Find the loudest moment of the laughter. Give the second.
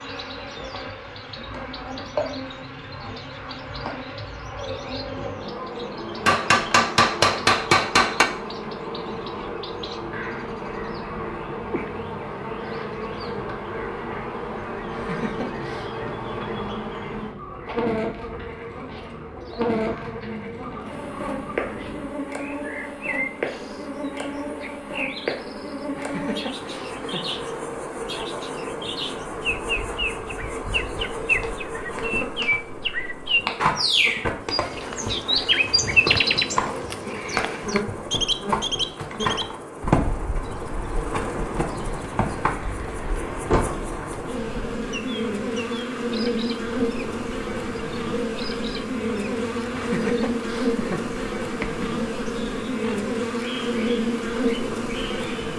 50 s.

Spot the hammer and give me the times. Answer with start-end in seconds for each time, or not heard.
6.2-8.2.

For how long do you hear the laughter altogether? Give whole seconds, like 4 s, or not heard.
4 s.